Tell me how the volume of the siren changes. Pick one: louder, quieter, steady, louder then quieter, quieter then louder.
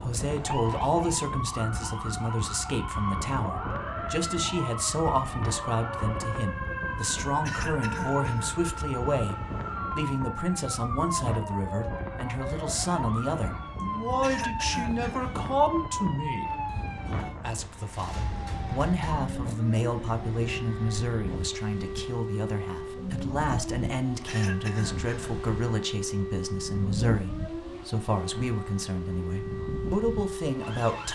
steady.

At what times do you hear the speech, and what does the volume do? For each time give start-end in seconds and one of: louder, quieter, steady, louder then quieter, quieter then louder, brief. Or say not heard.
0.0-16.6 steady
17.2-31.1 steady.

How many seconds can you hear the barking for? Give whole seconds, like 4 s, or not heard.
not heard.